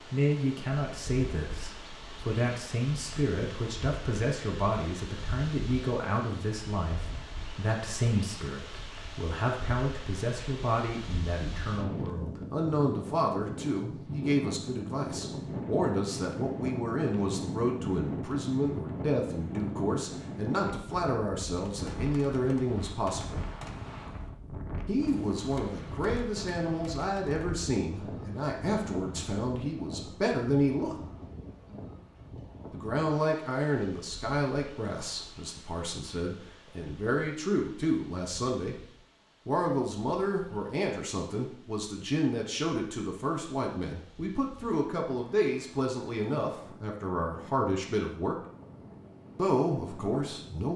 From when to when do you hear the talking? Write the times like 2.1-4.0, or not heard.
0.0-23.4, 24.9-31.0, 32.7-38.8, 39.5-48.4, 49.4-50.7.